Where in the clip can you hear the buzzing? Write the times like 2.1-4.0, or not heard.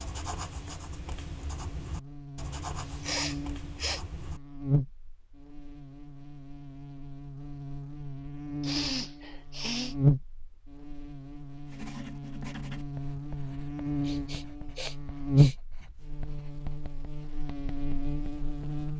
0.0-18.9.